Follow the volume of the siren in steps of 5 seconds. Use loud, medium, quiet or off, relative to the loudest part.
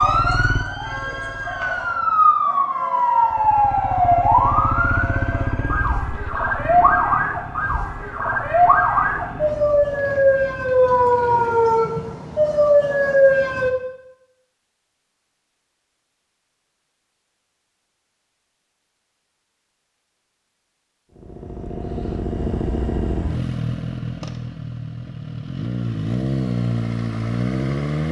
loud, loud, loud, off, off, off.